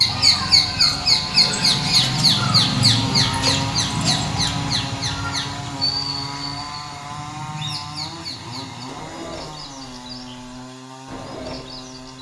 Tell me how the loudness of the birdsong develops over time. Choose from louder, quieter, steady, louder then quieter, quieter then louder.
quieter.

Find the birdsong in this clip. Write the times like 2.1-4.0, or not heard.
0.0-12.1.